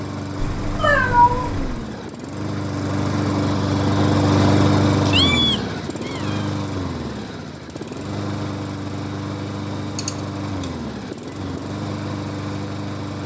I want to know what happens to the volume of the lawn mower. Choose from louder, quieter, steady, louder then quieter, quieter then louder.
louder then quieter.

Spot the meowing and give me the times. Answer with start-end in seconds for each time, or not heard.
0.4-1.7, 5.0-6.5, 9.9-10.7.